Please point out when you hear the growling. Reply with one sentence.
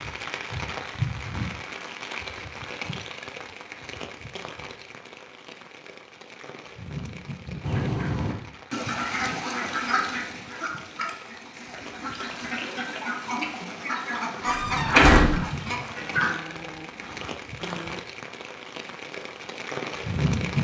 You can hear the growling from 16.0 to 18.0 s.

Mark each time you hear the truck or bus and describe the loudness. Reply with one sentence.
You can't hear the truck or bus here.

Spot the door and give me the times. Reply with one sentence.
The door can be heard from 14.4 to 15.4 s.